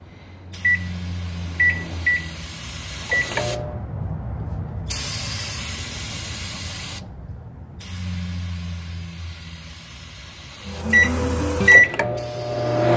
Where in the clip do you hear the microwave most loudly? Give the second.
11 s.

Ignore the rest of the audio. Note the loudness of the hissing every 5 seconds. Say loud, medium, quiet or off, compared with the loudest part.
loud, loud, medium.